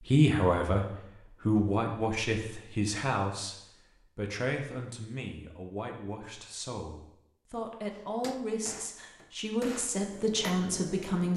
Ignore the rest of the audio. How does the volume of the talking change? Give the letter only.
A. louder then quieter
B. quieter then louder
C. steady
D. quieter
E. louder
B.